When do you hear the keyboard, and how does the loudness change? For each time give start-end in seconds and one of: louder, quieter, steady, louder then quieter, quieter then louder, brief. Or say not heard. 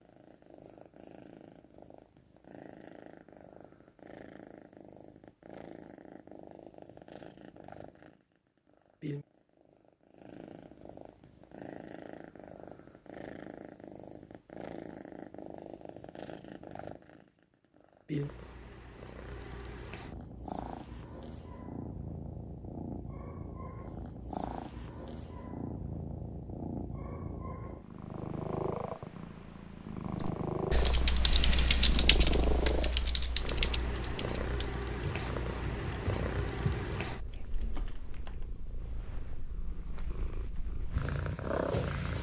30.2-38.5 quieter.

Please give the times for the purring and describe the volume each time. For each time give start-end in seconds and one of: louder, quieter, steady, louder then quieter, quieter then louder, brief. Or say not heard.
0.0-42.1 louder.